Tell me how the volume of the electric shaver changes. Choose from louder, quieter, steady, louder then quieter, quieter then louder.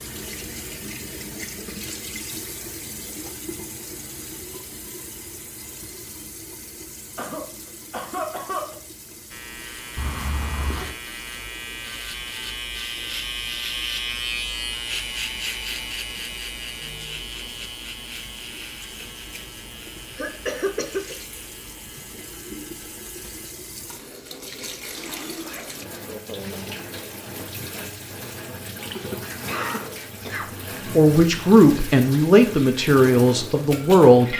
louder then quieter.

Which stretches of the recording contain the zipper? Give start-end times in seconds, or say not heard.
9.9-10.9, 24.8-25.8.